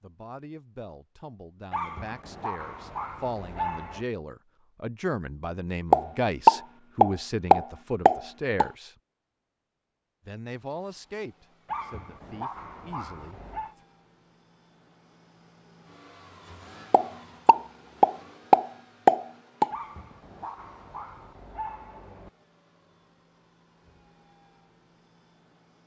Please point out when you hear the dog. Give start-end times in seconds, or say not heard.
1.7-4.0, 11.7-13.8, 19.7-22.3.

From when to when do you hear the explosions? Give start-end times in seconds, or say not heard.
5.9-8.7, 16.9-19.7.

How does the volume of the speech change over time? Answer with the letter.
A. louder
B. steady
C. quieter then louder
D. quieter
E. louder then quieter
E.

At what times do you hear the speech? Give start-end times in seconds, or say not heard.
0.0-8.9, 10.2-13.8.